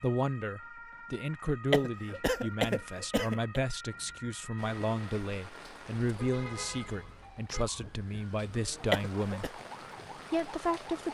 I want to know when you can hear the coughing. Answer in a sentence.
The coughing can be heard from 1.7 to 3.6 s and from 8.9 to 9.5 s.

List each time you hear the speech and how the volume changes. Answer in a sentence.
The speech can be heard from 0.0 to 9.4 s, at a steady volume; and briefly from 10.3 to 11.0 s.